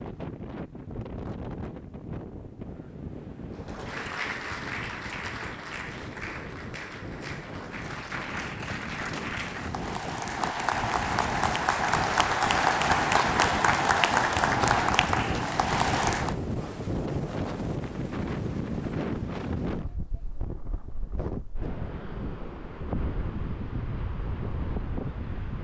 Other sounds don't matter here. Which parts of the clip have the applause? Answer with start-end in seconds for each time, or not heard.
3.5-16.4.